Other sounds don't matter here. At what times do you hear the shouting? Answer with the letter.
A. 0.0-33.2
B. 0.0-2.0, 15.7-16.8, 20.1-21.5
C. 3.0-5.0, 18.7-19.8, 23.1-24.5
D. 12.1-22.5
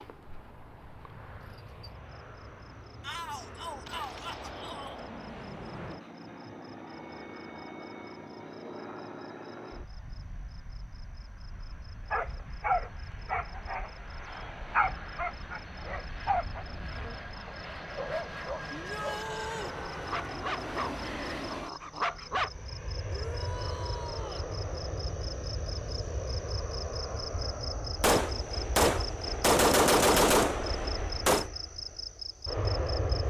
C.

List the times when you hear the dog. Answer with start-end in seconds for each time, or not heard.
12.1-22.5.